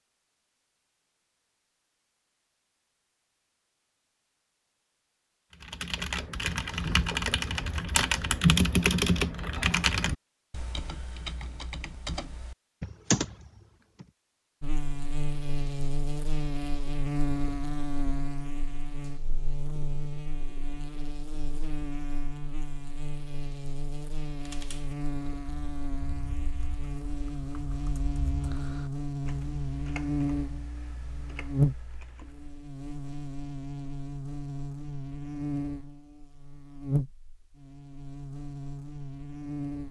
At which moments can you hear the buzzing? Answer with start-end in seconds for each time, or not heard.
14.6-39.8.